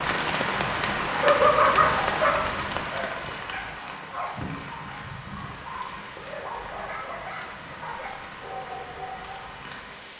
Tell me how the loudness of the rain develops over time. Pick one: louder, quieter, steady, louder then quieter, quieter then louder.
quieter.